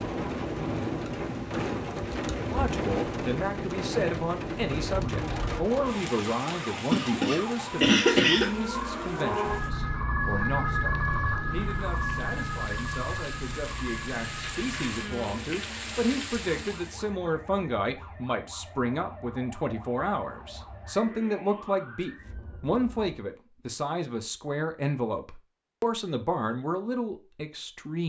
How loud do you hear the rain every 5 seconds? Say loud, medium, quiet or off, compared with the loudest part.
loud, medium, medium, medium, off, off.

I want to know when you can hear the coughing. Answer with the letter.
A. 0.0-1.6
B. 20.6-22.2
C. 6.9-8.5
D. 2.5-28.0
C.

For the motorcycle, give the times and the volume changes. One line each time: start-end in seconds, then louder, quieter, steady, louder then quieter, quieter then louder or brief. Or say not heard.
not heard.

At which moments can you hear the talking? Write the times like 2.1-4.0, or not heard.
2.5-28.0.